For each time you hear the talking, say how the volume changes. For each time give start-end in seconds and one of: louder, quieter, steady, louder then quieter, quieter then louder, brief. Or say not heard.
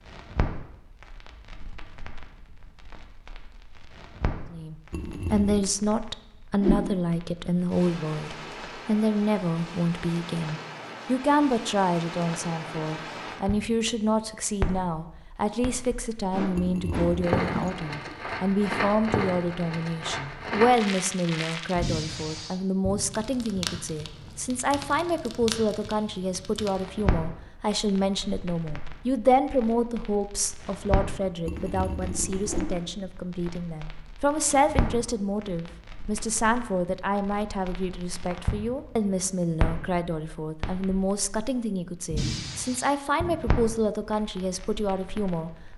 4.5-45.5 steady.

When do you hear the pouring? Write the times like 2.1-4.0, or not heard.
4.9-5.7, 16.6-17.7, 31.4-32.6.